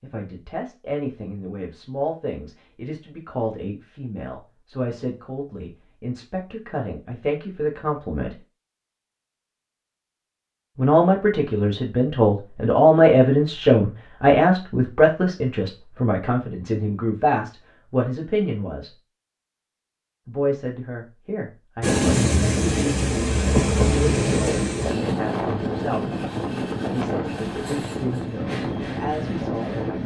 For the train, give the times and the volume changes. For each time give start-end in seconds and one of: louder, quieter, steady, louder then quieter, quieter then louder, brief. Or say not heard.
21.8-30.0 quieter.